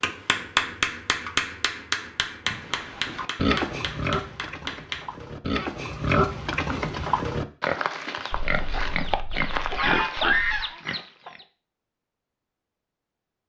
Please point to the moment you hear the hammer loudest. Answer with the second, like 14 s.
1 s.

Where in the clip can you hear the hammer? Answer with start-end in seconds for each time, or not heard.
0.0-5.0, 8.3-10.7.